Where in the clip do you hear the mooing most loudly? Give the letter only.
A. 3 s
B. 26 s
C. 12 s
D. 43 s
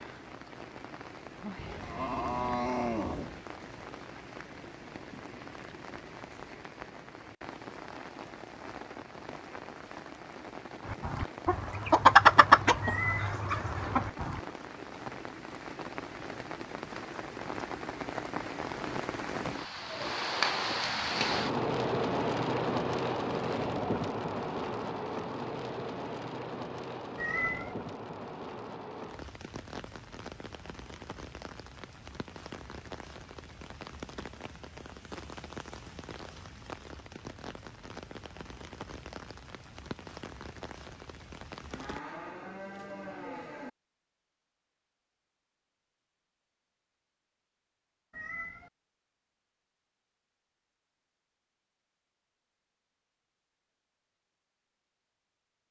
A.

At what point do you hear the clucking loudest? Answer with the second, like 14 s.
12 s.